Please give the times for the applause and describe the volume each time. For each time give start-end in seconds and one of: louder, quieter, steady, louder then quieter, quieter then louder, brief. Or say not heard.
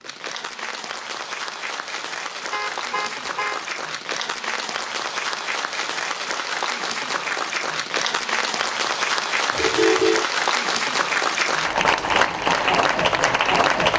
0.0-13.9 louder.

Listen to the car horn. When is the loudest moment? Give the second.
10 s.